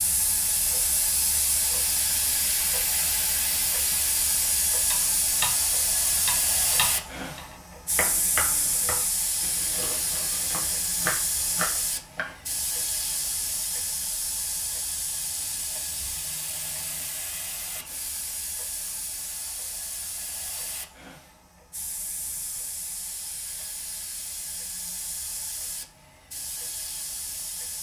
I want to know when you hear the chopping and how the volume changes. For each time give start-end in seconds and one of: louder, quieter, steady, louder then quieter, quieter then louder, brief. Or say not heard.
4.9-12.3 quieter then louder.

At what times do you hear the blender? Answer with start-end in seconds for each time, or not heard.
not heard.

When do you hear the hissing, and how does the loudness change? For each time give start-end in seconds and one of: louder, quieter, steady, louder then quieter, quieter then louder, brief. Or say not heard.
0.0-27.7 quieter.